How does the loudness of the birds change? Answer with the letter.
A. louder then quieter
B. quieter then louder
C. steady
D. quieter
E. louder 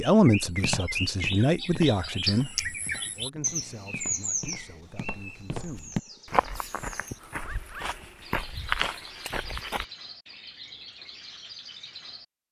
D.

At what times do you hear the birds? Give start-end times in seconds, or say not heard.
0.0-12.4.